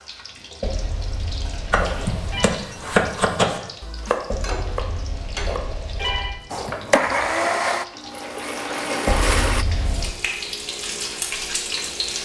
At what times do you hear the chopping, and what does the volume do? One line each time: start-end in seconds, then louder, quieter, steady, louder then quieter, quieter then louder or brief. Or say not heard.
1.7-7.5 quieter.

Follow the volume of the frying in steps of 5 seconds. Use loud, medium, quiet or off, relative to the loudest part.
medium, medium, loud.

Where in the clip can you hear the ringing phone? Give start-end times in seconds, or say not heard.
0.6-2.5, 4.3-6.4, 9.1-10.2.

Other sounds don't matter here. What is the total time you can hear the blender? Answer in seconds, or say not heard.
3 s.